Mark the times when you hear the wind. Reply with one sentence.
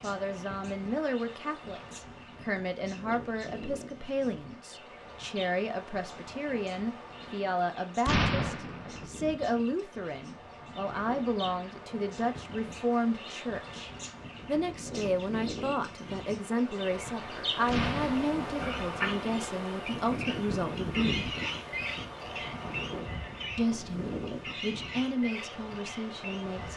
The wind can be heard from 0.0 to 26.7 s.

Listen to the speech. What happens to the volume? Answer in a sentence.
The volume of the speech stays about the same.